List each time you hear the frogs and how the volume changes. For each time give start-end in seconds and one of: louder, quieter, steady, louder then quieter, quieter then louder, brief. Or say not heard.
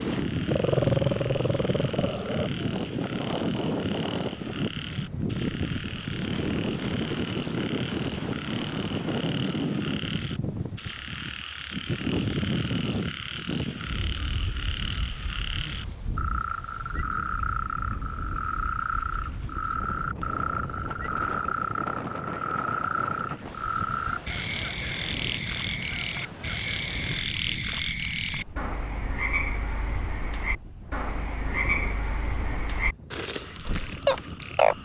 0.0-34.7 louder.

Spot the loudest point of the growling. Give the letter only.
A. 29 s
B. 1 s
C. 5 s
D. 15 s
B.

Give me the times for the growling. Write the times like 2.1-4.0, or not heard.
0.5-2.5.